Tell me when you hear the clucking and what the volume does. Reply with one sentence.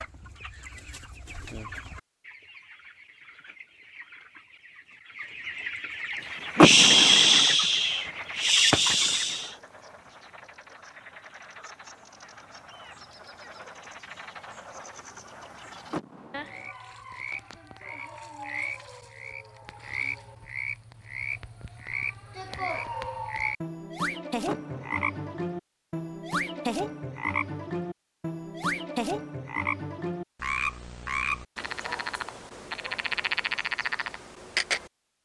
The clucking can be heard from 0.0 to 9.5 s, getting quieter then louder.